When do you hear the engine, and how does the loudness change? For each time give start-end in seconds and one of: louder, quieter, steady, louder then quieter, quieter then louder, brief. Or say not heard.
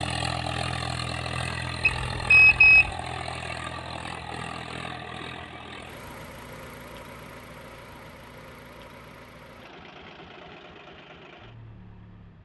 0.0-12.4 quieter.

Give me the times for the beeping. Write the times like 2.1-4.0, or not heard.
1.8-2.9.